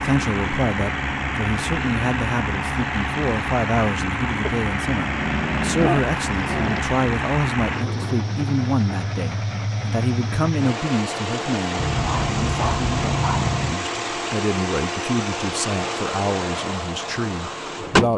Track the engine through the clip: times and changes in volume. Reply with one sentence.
You can hear the engine from 0.0 to 18.1 s, at a steady volume.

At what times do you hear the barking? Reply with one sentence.
The barking can be heard from 4.5 to 6.8 s and from 11.8 to 13.8 s.